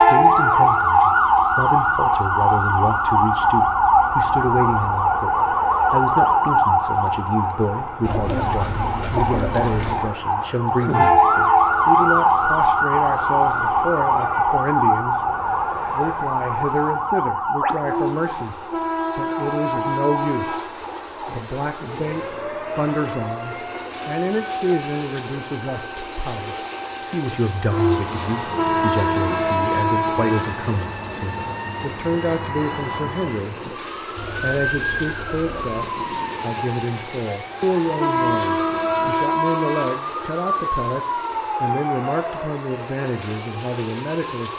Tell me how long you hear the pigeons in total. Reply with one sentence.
You can hear the pigeons for 4 seconds altogether.